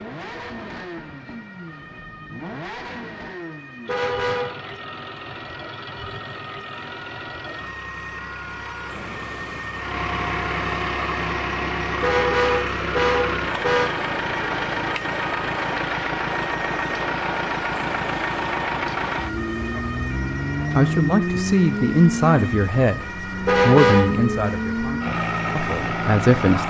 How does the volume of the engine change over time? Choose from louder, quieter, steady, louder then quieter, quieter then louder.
louder.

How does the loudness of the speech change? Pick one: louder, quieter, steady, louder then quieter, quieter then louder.
quieter.